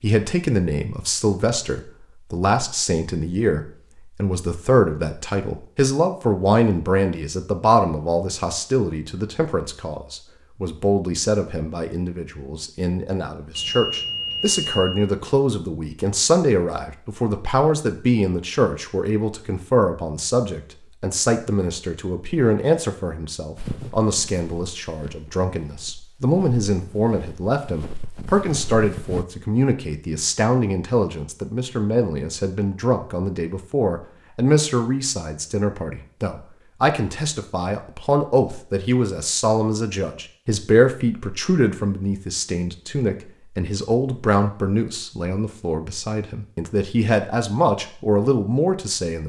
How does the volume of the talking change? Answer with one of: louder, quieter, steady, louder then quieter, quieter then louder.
steady.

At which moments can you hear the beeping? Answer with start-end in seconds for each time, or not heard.
13.6-15.1.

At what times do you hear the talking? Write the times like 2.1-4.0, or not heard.
0.0-49.2.